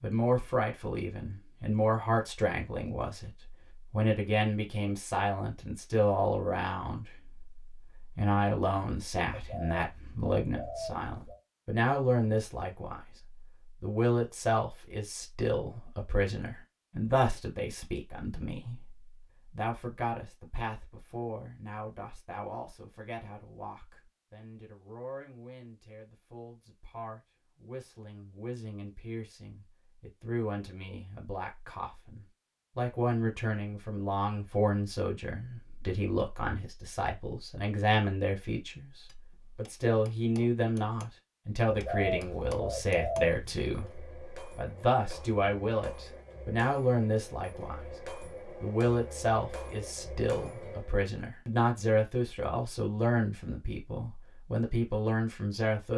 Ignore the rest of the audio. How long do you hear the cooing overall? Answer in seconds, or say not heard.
4 s.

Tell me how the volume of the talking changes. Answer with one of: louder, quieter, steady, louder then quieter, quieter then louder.
quieter then louder.